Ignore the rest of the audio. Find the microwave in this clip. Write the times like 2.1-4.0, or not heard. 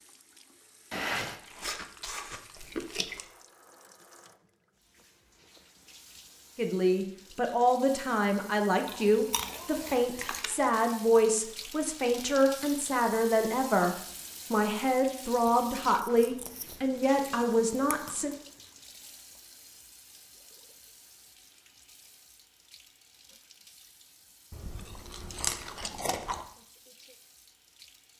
not heard.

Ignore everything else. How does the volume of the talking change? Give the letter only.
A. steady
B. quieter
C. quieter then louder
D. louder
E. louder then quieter
A.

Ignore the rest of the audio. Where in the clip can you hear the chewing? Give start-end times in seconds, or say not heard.
0.9-3.2, 8.8-10.6, 15.4-18.4, 24.5-26.4.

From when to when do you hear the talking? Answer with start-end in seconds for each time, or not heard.
6.5-18.4.